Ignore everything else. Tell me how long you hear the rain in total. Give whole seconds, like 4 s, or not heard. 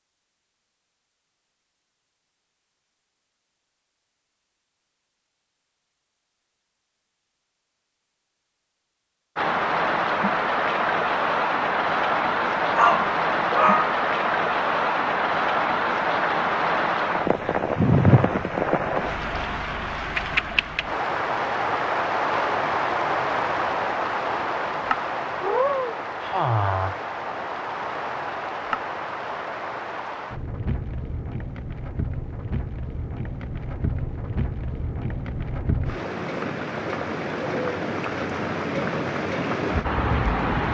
31 s.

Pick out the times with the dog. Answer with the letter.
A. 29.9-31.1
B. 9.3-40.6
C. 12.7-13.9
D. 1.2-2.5
C.